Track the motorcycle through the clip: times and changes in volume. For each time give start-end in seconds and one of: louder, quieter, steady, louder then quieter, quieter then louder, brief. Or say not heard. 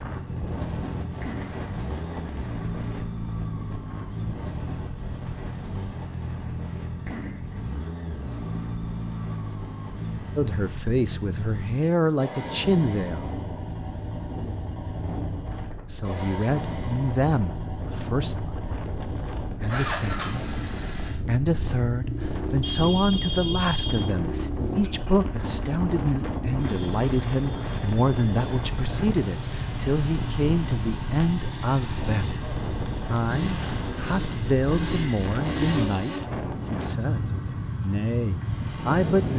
0.0-39.3 steady.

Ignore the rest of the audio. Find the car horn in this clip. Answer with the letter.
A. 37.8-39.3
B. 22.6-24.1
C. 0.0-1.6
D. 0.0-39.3
B.